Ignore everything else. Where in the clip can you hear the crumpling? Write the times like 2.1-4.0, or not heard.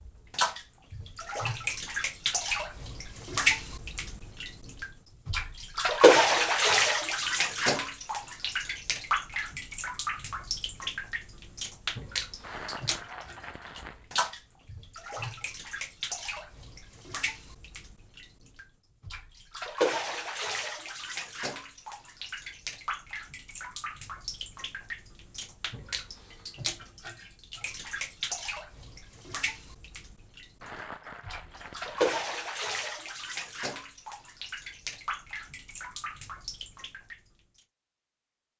12.4-14.1, 30.6-32.2.